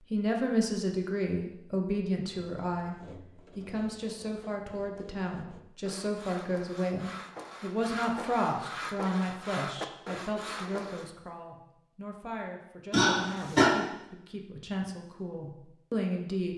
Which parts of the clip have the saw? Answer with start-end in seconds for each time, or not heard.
2.5-11.1.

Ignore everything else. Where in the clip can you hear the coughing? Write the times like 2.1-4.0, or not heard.
12.9-13.7.